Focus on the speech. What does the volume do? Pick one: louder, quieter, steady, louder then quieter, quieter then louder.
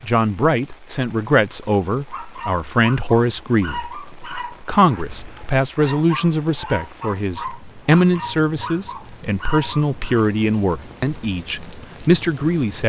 steady.